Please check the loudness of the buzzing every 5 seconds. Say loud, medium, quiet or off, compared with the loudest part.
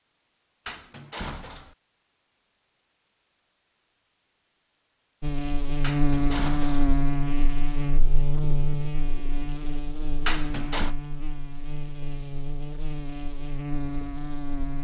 off, loud, medium.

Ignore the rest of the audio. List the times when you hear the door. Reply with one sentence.
The door can be heard from 0.7 to 1.8 s, from 5.8 to 7.0 s and from 10.2 to 10.9 s.